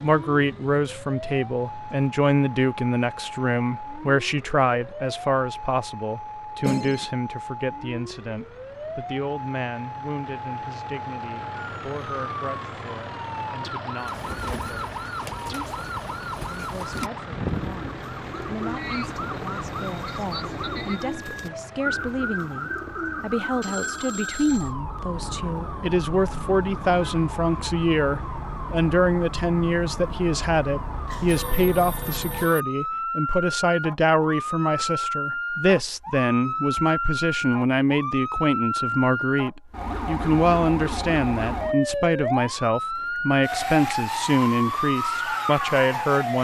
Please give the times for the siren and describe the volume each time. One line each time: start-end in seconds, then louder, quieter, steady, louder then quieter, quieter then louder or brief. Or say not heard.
0.0-46.4 louder.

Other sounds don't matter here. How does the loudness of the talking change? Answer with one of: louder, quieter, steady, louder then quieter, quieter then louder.
quieter then louder.